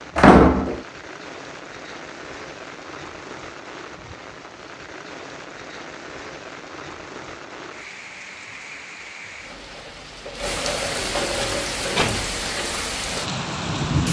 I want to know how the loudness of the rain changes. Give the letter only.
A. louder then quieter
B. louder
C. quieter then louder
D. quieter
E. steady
B.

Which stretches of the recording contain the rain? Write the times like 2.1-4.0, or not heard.
0.0-14.0.